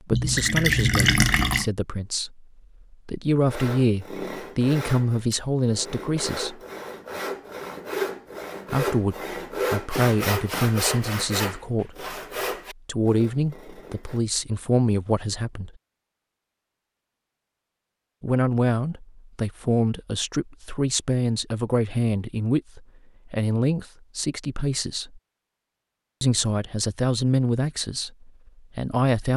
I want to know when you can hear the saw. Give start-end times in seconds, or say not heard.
3.5-14.2.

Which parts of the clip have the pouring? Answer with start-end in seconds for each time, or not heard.
0.1-1.7.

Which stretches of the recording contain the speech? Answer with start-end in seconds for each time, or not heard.
0.1-6.6, 8.7-12.2, 12.8-15.7, 18.2-25.2, 26.2-29.3.